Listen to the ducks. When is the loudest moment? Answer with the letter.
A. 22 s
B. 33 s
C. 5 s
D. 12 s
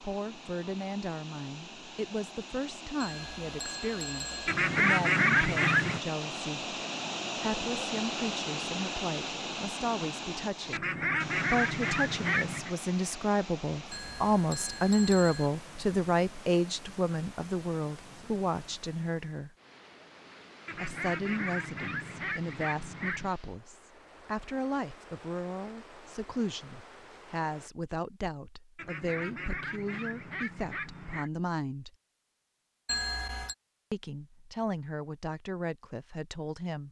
C.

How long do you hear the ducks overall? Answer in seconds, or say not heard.
9 s.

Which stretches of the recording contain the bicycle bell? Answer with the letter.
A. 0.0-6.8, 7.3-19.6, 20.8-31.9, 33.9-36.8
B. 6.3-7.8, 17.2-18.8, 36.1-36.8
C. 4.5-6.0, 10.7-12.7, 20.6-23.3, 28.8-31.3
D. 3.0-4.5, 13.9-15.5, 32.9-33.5
D.